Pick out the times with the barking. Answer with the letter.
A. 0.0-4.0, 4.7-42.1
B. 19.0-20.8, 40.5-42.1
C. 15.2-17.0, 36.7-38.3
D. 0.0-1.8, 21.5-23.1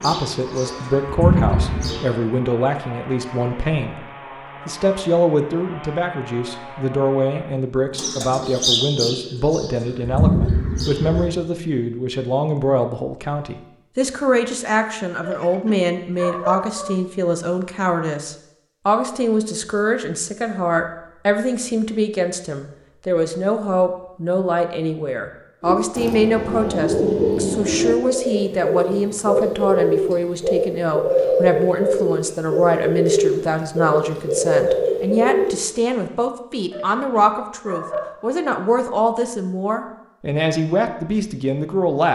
C.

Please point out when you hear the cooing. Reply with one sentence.
The cooing can be heard from 0.0 to 2.0 s, from 8.0 to 11.2 s and from 25.6 to 35.6 s.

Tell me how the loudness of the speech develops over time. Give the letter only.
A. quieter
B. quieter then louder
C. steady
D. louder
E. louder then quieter
C.